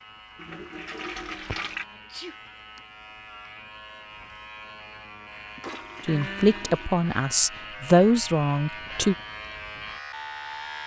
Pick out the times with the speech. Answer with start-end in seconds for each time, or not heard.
6.0-9.2.